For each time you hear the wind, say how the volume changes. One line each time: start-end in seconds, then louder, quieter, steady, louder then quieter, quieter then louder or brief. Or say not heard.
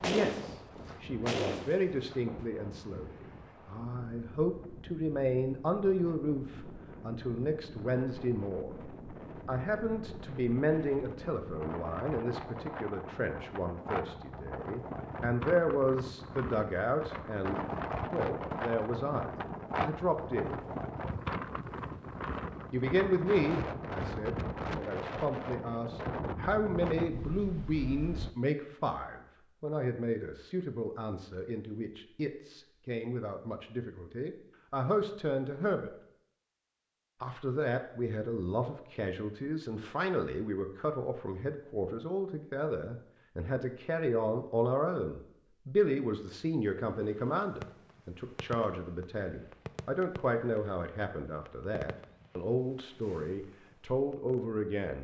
0.2-28.3 louder.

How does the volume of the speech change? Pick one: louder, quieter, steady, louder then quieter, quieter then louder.
steady.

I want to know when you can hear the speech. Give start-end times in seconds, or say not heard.
0.0-20.6, 22.7-35.9, 37.2-55.0.